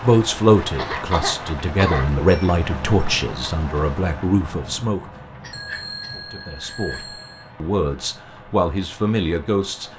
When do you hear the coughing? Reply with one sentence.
You can hear the coughing from 0.8 to 2.0 s and from 5.4 to 6.3 s.